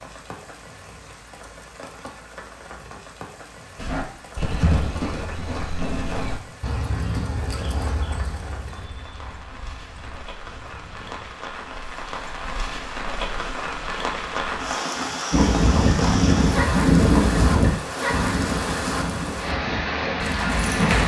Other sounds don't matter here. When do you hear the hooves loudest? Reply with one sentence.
The volume of the hooves peaks at 17 seconds.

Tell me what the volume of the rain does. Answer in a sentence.
The loudness of the rain goes up.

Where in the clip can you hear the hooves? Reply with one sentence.
You can hear the hooves from 3.8 to 11.3 s and from 15.3 to 21.0 s.